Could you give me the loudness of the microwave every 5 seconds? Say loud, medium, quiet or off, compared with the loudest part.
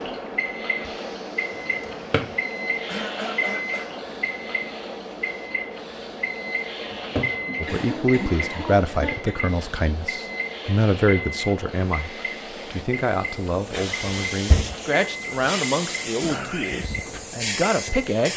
loud, loud, loud, medium.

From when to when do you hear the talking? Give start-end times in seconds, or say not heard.
7.6-18.3.